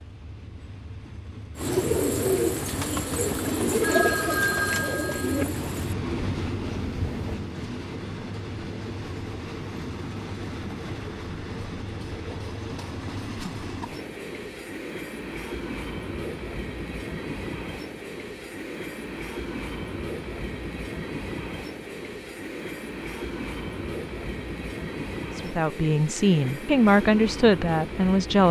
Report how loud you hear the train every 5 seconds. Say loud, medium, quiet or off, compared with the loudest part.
medium, loud, loud, loud, loud, loud.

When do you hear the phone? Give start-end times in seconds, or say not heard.
3.8-5.5.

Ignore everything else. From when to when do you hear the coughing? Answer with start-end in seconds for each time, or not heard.
not heard.